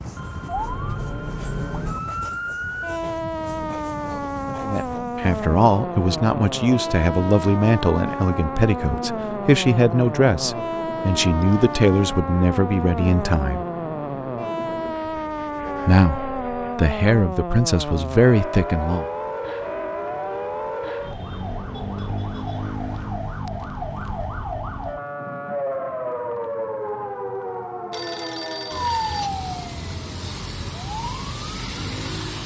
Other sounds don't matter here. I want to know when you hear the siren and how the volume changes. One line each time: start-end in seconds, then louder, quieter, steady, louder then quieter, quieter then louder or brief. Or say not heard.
0.0-32.4 steady.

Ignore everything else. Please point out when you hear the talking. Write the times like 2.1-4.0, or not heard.
4.6-13.7, 15.8-19.1.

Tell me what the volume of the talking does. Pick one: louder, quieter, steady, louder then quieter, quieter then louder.
steady.